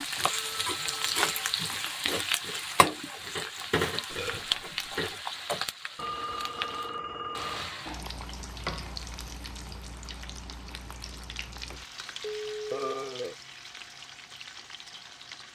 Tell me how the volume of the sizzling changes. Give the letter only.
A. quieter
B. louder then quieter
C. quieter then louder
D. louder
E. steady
A.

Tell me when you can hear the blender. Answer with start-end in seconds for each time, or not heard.
not heard.